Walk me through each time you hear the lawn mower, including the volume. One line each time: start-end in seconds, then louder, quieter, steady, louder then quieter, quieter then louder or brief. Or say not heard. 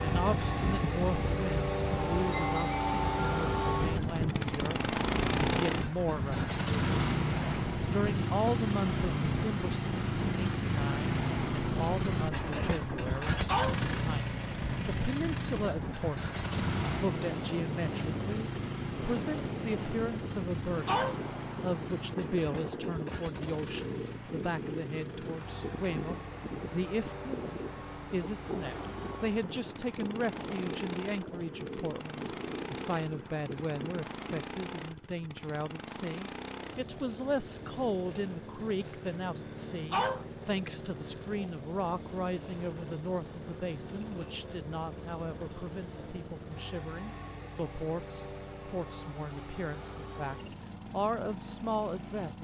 0.0-52.3 quieter.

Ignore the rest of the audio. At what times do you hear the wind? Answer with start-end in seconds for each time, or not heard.
0.0-34.5.